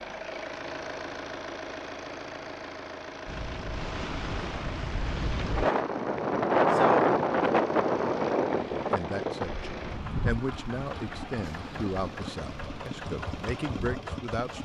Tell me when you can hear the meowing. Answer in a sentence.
You can't hear the meowing here.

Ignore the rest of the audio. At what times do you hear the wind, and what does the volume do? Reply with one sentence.
The wind can be heard from 3.2 to 14.6 s, getting louder then quieter.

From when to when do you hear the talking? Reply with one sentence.
You can hear the talking from 8.7 to 14.6 s.